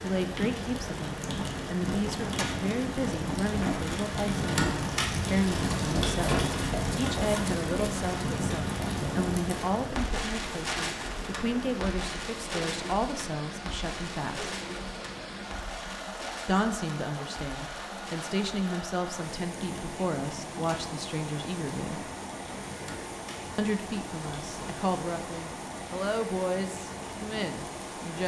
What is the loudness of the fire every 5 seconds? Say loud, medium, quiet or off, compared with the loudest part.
loud, loud, medium, quiet, quiet, quiet.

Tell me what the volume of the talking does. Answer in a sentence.
The volume of the talking stays about the same.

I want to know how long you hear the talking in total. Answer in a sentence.
The talking can be heard for 25 seconds in total.